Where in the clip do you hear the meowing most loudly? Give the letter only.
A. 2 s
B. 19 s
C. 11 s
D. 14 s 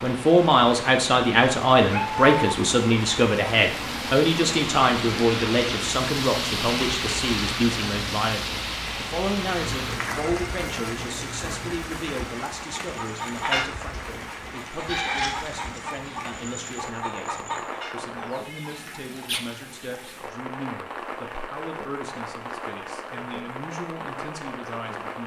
A.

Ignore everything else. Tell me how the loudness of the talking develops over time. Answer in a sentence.
The loudness of the talking goes down.